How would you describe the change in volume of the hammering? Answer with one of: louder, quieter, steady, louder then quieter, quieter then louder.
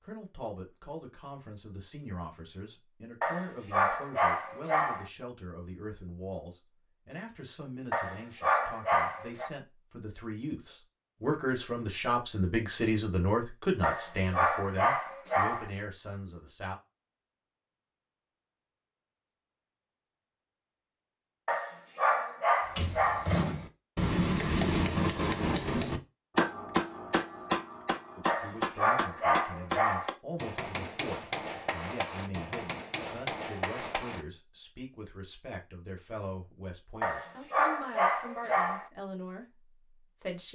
quieter.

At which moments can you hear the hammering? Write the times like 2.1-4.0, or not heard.
22.8-34.2.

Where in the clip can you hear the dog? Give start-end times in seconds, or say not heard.
3.2-5.0, 7.9-9.5, 13.8-15.7, 21.4-23.3, 28.2-30.1, 37.0-38.9.